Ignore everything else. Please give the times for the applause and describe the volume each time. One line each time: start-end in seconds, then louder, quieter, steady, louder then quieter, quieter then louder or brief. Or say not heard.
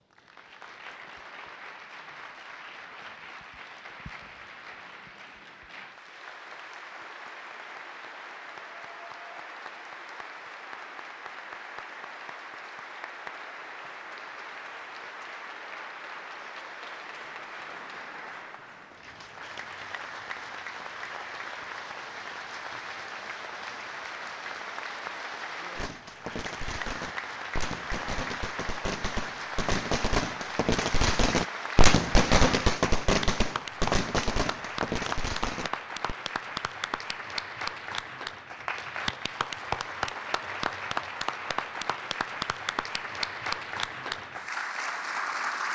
0.0-45.7 louder.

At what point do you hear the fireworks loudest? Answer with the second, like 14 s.
32 s.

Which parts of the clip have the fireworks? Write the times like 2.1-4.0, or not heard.
25.8-36.1.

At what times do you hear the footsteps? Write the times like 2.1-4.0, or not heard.
not heard.